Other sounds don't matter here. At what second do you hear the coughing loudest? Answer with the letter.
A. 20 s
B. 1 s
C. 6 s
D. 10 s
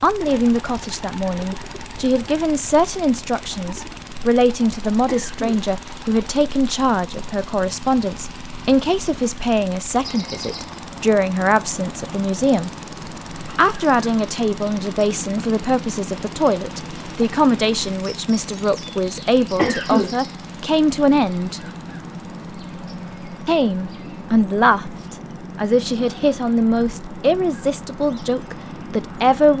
A.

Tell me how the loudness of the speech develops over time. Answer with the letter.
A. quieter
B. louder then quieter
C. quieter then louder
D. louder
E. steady
E.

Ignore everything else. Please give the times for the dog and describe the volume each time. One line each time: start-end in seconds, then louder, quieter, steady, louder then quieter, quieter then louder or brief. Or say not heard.
not heard.